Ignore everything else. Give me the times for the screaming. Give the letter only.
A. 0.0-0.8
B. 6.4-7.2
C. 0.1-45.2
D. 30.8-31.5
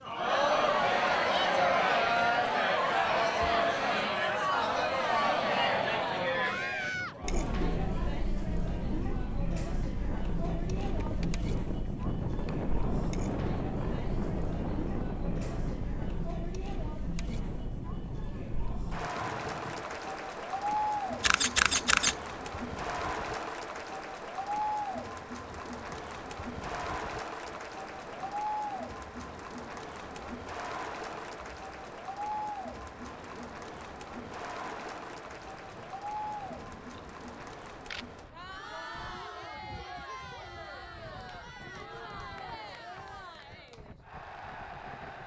B.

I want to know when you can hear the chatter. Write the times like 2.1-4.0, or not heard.
0.1-45.2.